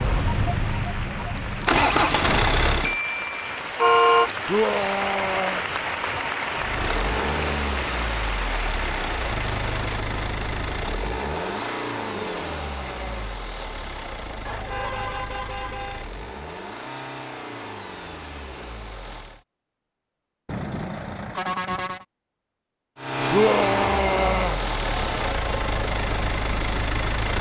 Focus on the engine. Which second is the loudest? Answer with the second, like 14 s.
2 s.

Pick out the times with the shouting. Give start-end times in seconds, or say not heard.
4.5-5.7, 12.1-13.3, 23.3-24.6.